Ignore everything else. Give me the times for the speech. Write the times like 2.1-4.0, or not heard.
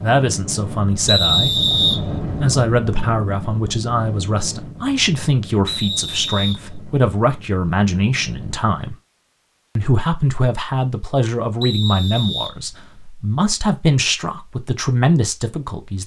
0.0-8.9, 9.8-16.0.